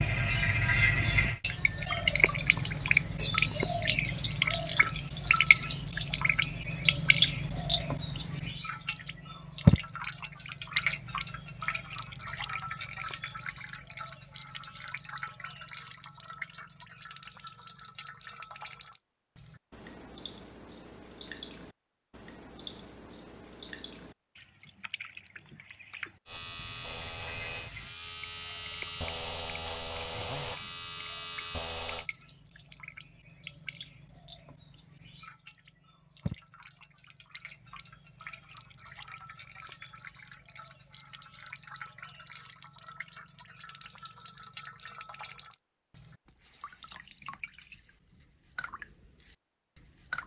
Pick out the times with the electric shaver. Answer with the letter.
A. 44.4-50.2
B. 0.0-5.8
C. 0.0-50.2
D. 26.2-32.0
D.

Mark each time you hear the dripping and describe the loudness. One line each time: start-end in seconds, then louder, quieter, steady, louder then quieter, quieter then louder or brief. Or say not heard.
0.0-50.2 quieter.